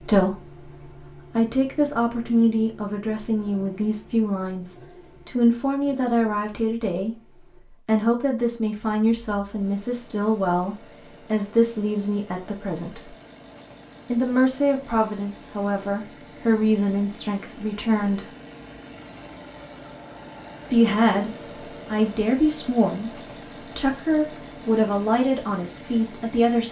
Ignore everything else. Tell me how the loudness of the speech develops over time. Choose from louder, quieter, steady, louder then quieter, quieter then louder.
steady.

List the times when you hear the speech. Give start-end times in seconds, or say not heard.
0.0-13.1, 14.1-18.3, 20.7-26.6.